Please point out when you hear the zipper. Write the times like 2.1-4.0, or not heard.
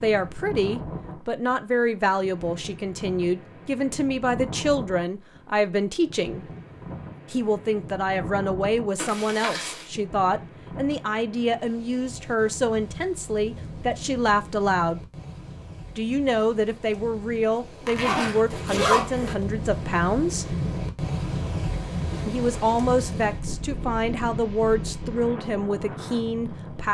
8.9-9.8, 17.9-19.4.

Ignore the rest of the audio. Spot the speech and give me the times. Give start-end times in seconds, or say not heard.
0.0-6.5, 7.3-15.0, 15.9-20.4, 22.2-26.8.